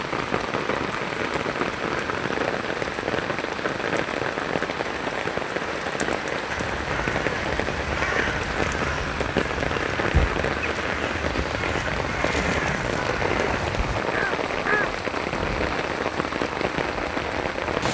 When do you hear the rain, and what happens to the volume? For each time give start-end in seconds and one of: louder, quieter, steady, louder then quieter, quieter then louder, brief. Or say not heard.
0.0-17.8 steady.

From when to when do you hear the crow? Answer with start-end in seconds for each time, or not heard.
6.5-15.8.